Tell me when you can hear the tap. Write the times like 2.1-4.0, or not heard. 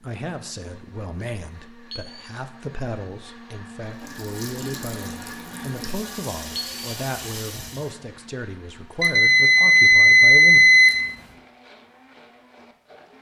3.9-7.9.